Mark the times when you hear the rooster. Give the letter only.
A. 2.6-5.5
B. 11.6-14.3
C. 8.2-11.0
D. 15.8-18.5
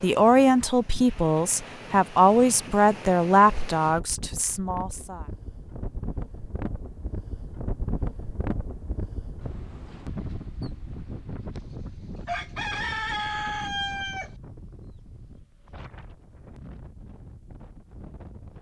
B.